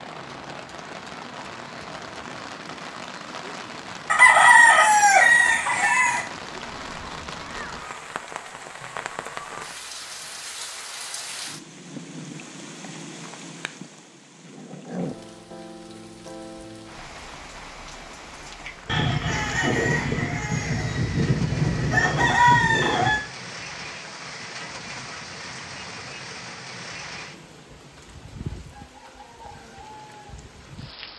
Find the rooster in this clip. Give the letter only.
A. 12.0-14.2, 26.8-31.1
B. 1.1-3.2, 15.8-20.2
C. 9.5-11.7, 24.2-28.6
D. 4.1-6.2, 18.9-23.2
D.